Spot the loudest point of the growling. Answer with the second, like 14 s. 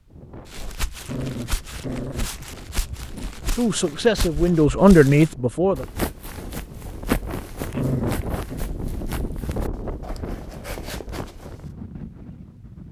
8 s.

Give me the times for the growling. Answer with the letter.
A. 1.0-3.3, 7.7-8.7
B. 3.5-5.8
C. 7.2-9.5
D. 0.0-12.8
A.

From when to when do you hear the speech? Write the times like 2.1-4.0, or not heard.
3.5-5.8.